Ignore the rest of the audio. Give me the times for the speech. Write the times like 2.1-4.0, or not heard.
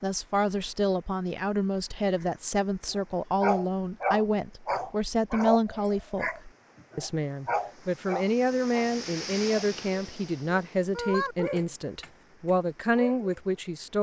0.0-13.9.